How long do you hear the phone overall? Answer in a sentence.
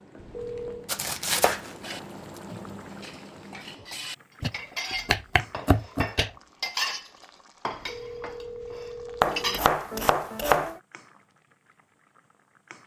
The phone can be heard for 3 seconds in total.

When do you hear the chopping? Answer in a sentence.
You can hear the chopping from 0.8 to 2.0 s, from 4.4 to 6.3 s and from 9.2 to 10.8 s.